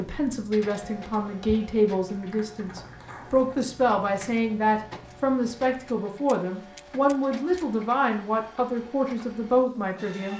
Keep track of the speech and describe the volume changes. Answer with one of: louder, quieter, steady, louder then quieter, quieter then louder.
steady.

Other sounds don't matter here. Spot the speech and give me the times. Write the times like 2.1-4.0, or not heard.
0.0-10.3.